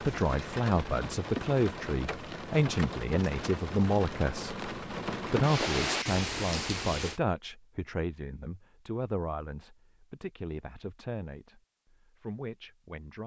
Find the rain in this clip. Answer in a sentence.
You can hear the rain from 0.0 to 7.2 s.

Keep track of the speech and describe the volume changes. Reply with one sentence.
The loudness of the speech goes down.